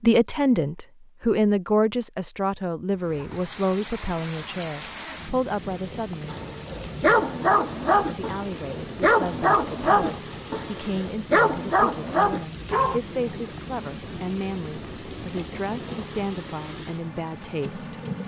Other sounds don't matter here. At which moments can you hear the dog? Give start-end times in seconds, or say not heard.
6.2-13.0.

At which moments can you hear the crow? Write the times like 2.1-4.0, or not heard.
not heard.